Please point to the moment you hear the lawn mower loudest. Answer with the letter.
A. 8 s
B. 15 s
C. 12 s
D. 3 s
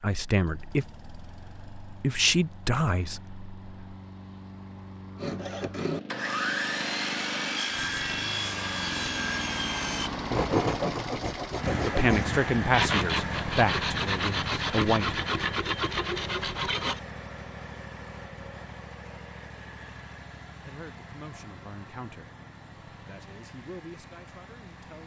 C.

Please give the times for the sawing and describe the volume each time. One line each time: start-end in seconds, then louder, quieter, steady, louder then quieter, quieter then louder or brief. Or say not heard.
5.2-17.0 steady.